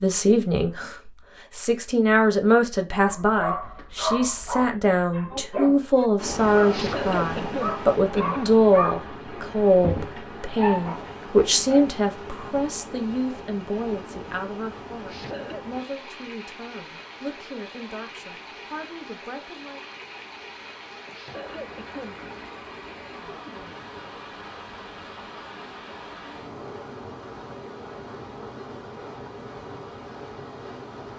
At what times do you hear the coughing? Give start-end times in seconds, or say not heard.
6.7-8.6, 15.1-15.7, 21.1-22.1.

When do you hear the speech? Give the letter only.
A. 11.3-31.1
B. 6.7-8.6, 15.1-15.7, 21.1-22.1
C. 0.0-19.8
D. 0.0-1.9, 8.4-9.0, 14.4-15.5
C.